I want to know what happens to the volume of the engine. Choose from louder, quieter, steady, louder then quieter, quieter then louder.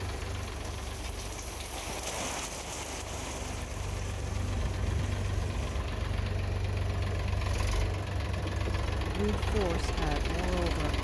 louder.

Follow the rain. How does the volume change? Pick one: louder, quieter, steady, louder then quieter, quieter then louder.
louder then quieter.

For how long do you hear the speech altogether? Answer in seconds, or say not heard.
2 s.